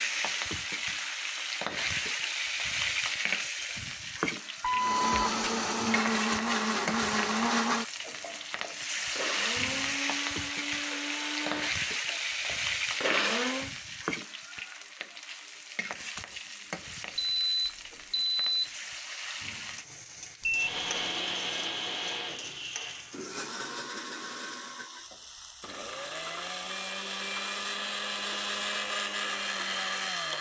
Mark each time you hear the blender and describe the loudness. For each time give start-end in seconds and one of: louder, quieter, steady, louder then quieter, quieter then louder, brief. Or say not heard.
4.8-13.8 quieter then louder
20.5-30.3 quieter then louder.